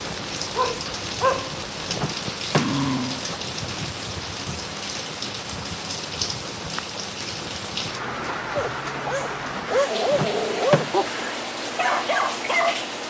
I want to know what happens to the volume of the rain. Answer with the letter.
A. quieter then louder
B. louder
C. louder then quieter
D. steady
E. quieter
D.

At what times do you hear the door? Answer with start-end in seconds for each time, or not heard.
1.9-2.8, 10.1-10.9.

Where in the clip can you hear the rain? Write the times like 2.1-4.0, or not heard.
0.0-13.0.